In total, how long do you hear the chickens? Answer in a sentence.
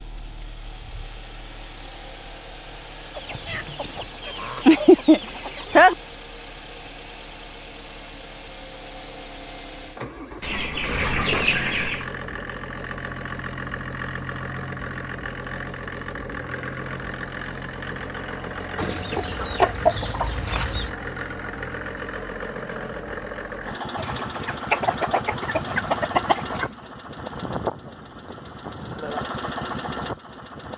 The chickens can be heard for 9 seconds in total.